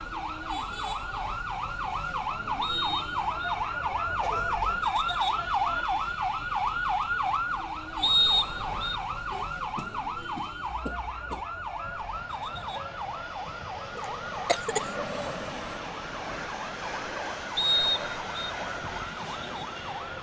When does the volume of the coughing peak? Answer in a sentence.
The volume of the coughing peaks at 15 seconds.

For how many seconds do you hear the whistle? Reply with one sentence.
The whistle can be heard for 3 seconds in total.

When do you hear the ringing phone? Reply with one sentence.
The ringing phone can't be heard in this clip.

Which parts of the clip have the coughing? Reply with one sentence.
You can hear the coughing from 4.2 to 4.9 s, from 9.3 to 11.4 s and from 13.9 to 15.3 s.